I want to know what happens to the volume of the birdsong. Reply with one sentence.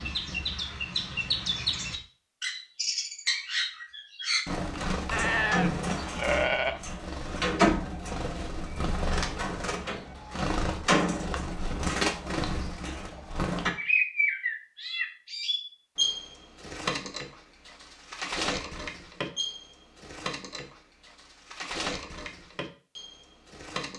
The volume of the birdsong goes down.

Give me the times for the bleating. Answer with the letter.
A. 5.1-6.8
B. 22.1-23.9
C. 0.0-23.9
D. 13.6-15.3
A.